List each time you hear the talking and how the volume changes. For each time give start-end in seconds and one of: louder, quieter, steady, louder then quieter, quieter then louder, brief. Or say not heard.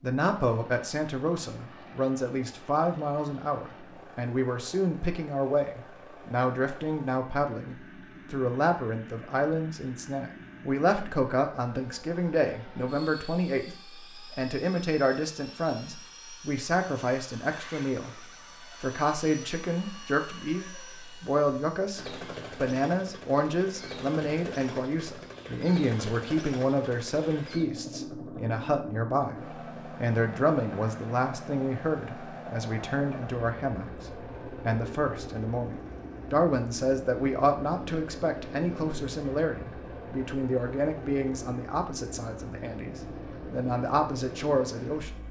0.0-45.1 steady.